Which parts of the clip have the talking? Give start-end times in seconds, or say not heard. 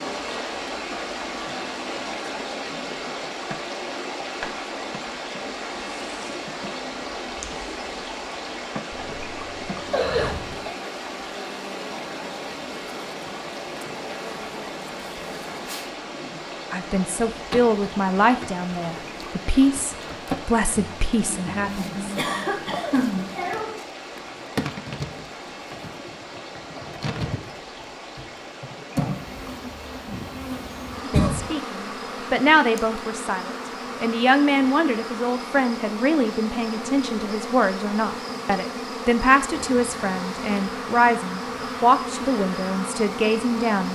16.7-21.9, 31.1-43.8.